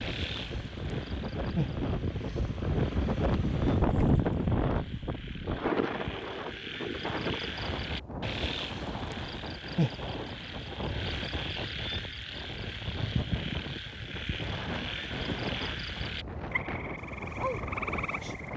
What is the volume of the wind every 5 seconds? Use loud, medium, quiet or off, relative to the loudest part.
loud, medium, medium, medium.